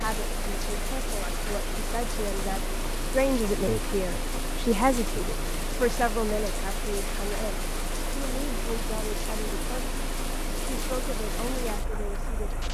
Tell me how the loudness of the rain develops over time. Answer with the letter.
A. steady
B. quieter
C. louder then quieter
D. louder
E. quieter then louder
A.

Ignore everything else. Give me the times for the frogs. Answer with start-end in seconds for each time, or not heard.
not heard.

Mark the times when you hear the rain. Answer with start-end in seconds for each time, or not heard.
0.0-12.6.